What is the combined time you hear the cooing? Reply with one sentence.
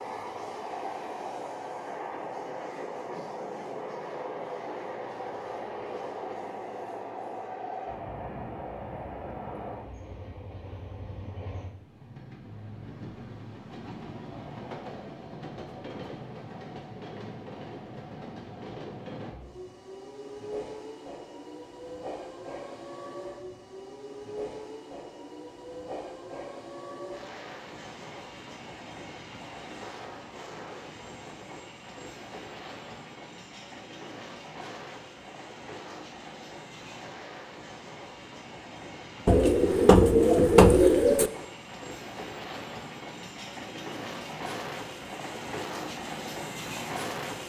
The cooing can be heard for 2 seconds in total.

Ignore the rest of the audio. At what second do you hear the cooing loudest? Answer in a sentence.
The loudest moment of the cooing is at 41 seconds.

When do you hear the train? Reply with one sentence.
You can hear the train from 0.0 to 47.4 s.